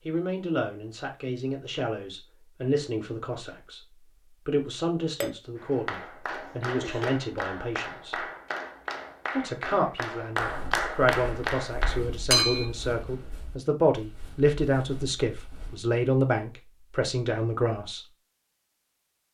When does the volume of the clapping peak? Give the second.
11 s.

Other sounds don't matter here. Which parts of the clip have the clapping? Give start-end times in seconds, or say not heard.
5.5-12.4.